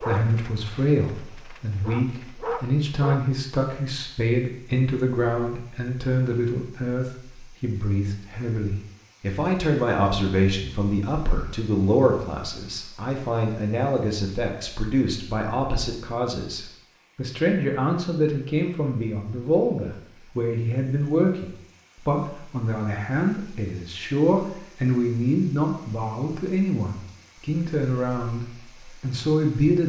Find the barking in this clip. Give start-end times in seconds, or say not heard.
0.0-3.2.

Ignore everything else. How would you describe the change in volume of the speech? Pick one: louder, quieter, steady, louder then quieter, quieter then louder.
steady.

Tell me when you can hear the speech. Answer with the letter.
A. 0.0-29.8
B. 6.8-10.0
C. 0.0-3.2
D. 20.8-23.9
A.